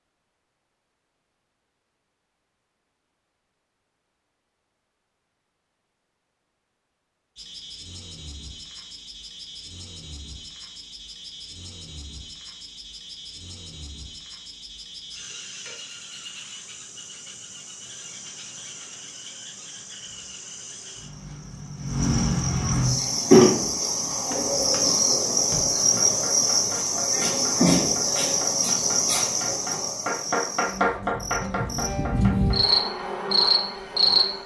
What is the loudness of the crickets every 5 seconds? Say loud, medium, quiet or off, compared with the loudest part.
off, quiet, quiet, quiet, loud, loud, loud.